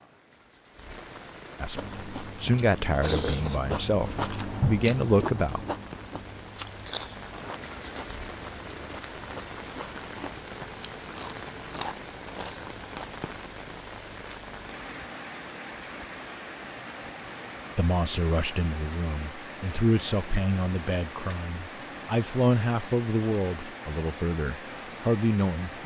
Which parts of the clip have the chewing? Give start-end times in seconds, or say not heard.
1.8-13.2.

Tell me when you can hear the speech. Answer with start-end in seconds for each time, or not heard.
1.6-5.6, 17.8-25.8.